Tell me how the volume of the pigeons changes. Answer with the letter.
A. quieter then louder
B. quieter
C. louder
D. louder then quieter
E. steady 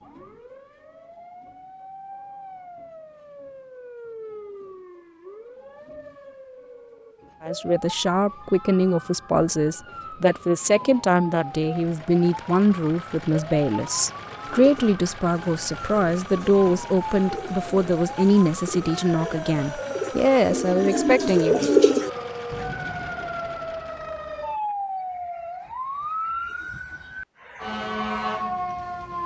C.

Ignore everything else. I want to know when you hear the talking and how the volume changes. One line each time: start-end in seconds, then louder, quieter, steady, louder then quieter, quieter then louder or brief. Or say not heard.
7.4-21.7 steady.